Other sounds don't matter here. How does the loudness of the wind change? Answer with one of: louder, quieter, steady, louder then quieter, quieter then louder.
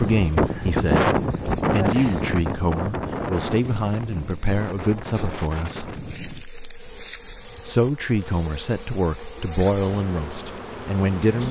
quieter.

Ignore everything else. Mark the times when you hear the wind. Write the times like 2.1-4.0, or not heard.
0.0-6.5.